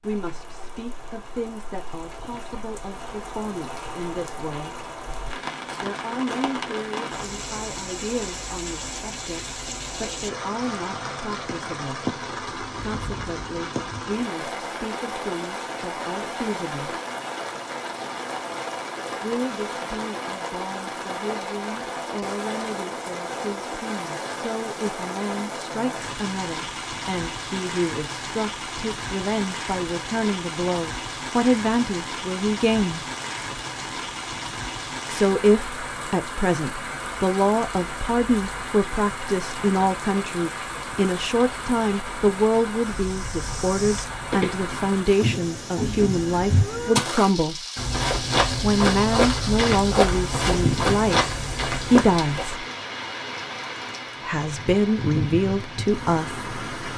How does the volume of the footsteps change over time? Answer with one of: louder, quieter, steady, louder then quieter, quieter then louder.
louder.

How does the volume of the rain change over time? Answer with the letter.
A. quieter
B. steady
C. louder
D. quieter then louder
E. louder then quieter
B.